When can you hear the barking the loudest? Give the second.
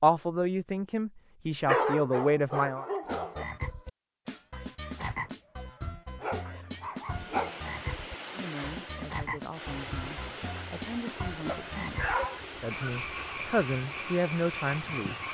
2 s.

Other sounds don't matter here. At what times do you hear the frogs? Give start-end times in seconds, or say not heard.
3.0-15.2.